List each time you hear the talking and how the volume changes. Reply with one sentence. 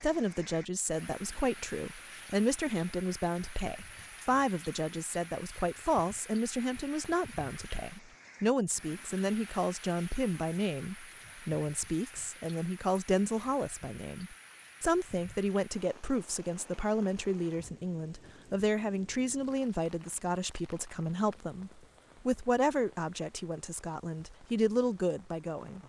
You can hear the talking from 0.0 to 25.8 s, at a steady volume.